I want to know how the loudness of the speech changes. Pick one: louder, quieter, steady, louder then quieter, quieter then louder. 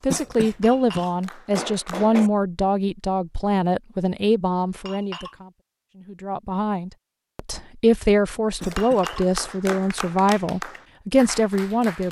quieter then louder.